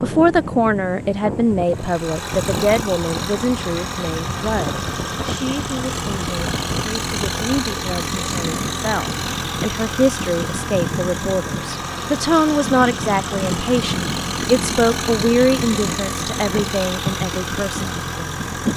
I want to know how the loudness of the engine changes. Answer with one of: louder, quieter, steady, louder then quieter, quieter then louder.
steady.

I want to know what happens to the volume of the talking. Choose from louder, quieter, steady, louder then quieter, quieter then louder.
quieter then louder.